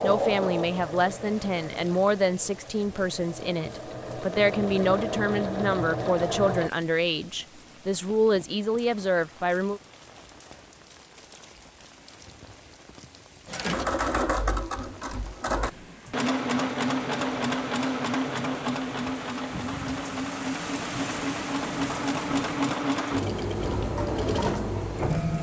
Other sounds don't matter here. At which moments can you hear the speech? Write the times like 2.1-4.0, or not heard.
0.0-9.8.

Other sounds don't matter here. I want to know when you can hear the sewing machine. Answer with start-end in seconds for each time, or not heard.
0.0-6.7, 13.4-25.3.